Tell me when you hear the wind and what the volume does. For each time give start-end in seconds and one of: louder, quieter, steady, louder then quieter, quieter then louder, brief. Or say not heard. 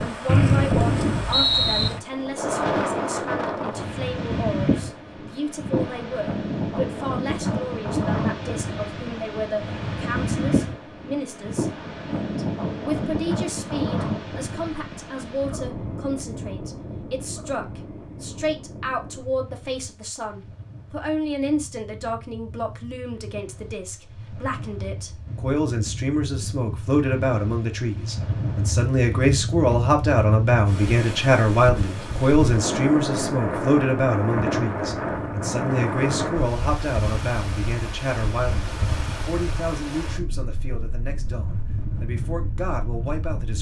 0.0-43.5 quieter then louder.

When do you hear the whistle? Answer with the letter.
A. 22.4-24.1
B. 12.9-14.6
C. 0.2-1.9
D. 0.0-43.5
C.